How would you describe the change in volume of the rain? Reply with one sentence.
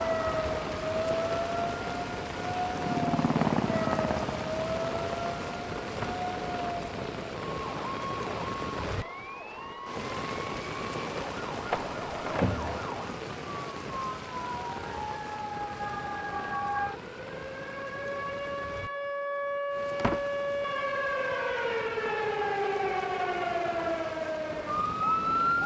The loudness of the rain goes down.